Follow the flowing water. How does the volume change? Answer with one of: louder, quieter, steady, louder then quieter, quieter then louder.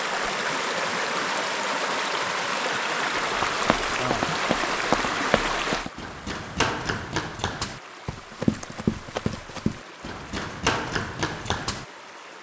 quieter.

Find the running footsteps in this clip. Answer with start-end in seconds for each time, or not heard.
3.4-11.8.